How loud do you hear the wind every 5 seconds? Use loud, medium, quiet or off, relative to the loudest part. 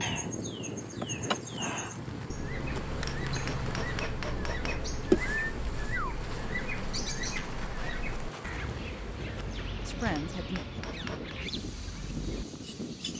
loud, medium, loud.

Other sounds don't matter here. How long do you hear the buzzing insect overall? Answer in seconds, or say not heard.
13 s.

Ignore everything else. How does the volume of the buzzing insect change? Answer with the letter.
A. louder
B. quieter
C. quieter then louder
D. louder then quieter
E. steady
D.